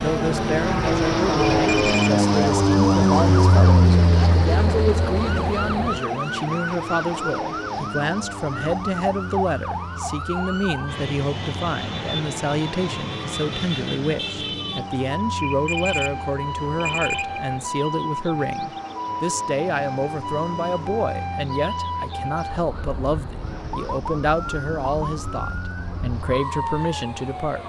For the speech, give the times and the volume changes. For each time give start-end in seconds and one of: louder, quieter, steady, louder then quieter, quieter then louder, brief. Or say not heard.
0.0-27.6 steady.